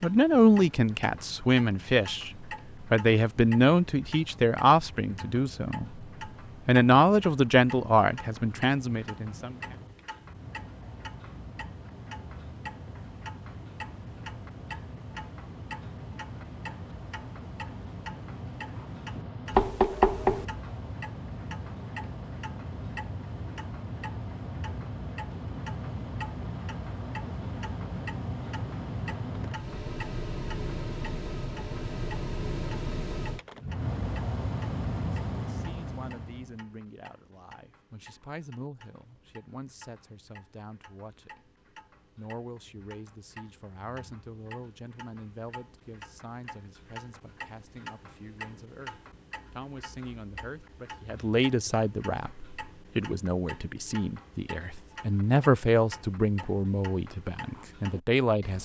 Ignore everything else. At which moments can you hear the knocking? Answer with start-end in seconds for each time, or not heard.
19.5-20.4.